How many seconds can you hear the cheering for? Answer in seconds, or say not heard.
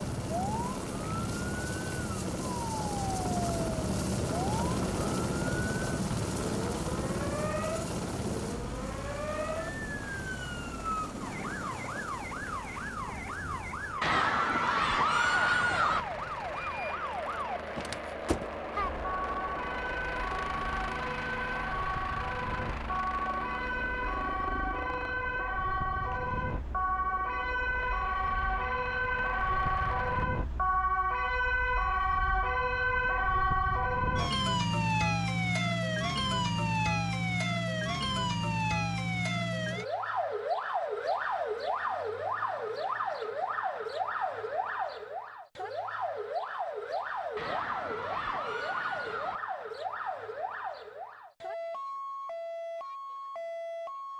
4 s.